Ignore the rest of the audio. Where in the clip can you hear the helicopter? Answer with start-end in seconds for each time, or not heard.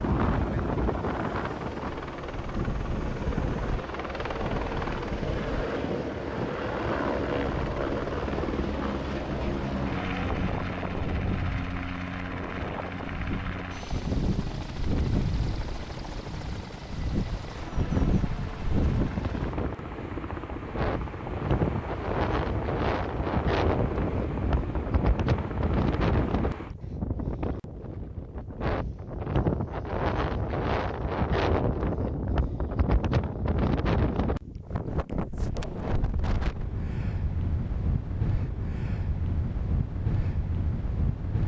0.0-26.8.